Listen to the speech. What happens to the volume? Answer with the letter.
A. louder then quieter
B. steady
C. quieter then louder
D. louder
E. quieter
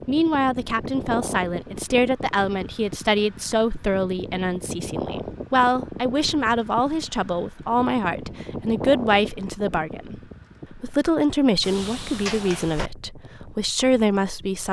B.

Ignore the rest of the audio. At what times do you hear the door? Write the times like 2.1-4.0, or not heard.
11.6-12.9.